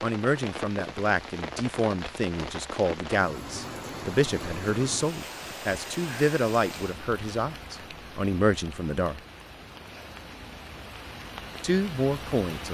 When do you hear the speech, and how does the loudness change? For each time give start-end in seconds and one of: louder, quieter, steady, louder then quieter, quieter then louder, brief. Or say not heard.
0.0-9.2 steady
11.6-12.6 brief.